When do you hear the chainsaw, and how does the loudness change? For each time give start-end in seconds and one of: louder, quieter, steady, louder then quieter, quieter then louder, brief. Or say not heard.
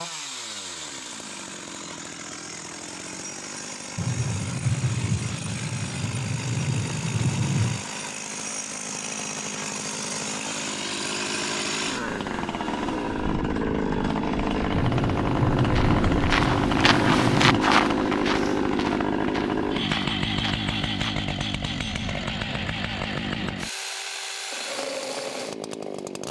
0.0-26.2 louder then quieter.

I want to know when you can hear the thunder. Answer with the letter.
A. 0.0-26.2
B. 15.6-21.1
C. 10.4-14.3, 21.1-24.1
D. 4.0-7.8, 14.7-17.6
D.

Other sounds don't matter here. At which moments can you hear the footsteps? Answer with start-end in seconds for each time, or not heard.
15.6-21.1.